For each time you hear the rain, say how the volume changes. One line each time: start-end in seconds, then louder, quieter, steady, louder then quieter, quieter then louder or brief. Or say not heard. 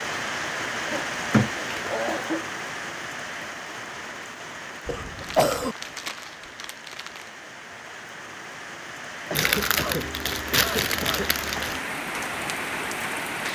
0.0-13.4 quieter then louder.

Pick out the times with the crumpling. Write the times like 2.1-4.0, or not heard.
1.1-2.0, 5.2-7.3, 9.3-11.8.